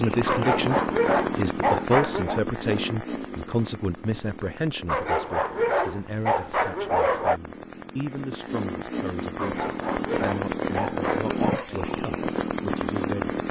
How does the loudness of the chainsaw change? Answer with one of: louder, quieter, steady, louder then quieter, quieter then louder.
quieter then louder.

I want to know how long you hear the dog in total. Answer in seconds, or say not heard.
7 s.